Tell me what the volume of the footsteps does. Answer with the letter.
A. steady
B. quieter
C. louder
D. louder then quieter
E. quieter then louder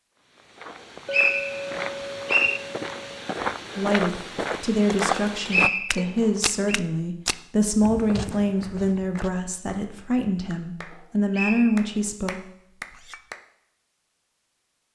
D.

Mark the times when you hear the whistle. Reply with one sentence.
The whistle can be heard from 0.7 to 2.6 s, from 5.5 to 6.8 s and from 10.9 to 12.0 s.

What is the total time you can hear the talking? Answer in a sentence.
You can hear the talking for 9 seconds altogether.